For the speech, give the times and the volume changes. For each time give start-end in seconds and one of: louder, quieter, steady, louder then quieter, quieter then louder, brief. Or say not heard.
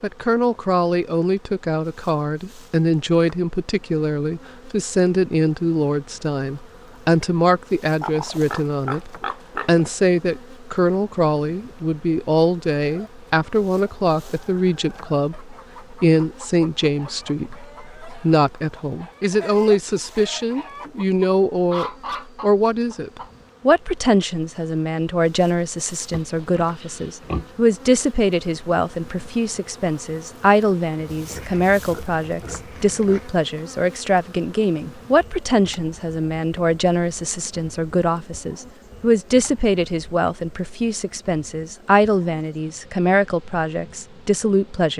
0.0-44.9 steady.